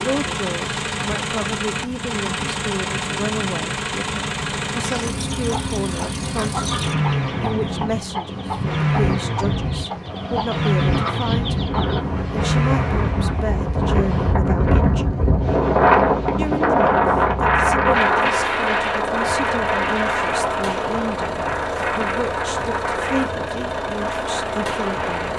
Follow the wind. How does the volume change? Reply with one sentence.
The volume of the wind goes up, then down.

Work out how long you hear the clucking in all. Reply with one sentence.
You can hear the clucking for 7 seconds altogether.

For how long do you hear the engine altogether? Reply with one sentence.
The engine can be heard for 25 seconds in total.